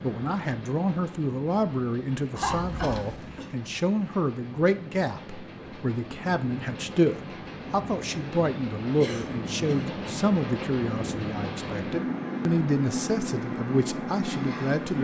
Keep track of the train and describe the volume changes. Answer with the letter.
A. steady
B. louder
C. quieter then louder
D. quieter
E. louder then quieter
B.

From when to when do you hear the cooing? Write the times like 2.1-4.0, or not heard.
not heard.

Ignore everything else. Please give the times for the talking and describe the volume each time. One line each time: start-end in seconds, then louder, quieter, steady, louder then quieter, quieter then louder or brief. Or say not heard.
0.0-14.9 steady.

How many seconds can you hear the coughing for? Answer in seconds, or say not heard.
2 s.